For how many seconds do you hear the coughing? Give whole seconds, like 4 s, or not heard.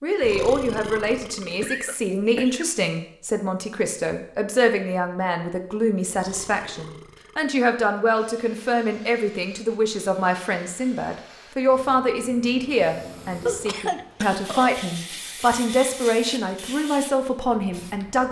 2 s.